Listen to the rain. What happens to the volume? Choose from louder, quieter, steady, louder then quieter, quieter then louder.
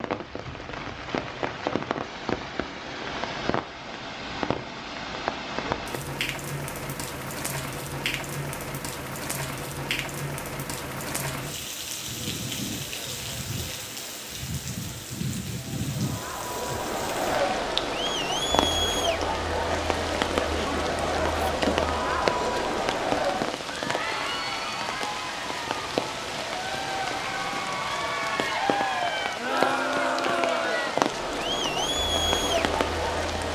steady.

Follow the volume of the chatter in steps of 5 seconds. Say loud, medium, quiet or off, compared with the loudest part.
off, off, off, loud, loud, loud, loud.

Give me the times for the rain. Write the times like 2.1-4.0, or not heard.
0.0-33.4.